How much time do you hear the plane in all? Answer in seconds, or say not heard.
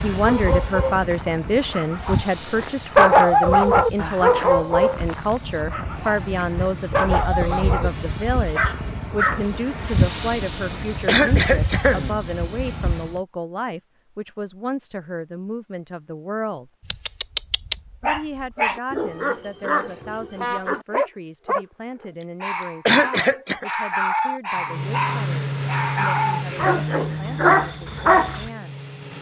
18 s.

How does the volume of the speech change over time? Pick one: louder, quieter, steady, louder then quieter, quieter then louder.
quieter.